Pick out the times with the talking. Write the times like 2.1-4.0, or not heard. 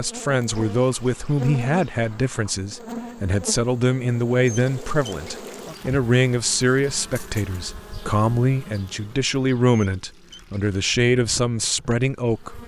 0.0-12.6.